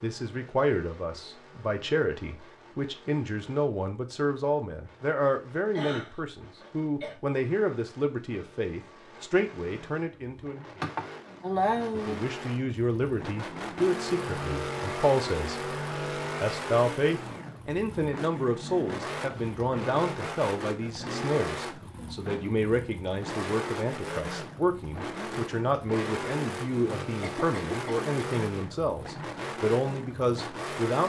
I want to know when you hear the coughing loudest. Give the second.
12 s.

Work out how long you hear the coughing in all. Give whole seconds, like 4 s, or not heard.
4 s.